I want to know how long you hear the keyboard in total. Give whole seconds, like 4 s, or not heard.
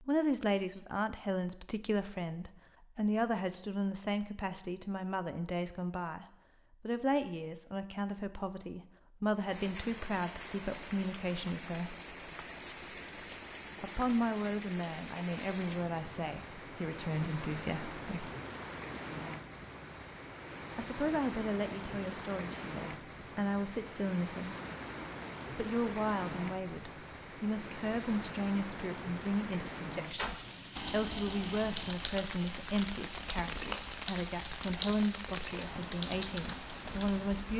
7 s.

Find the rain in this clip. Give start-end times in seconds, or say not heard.
9.3-37.5.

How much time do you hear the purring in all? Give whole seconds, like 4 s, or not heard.
not heard.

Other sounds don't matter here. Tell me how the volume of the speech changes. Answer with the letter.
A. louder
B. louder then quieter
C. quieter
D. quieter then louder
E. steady
E.